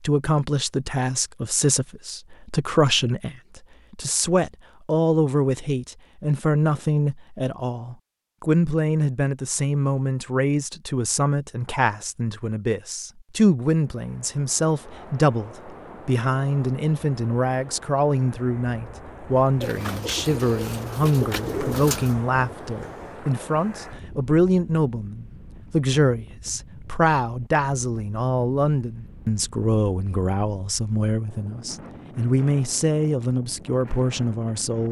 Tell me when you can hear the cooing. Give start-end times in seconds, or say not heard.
19.6-22.1.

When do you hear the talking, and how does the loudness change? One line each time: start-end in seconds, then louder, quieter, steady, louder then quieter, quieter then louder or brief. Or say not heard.
0.0-34.8 steady.